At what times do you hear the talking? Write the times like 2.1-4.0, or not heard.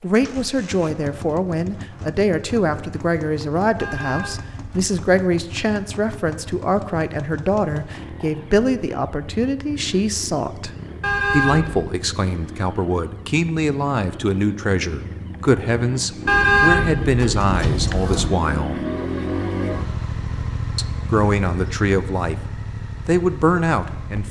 0.0-10.7, 11.3-18.9, 20.8-24.2.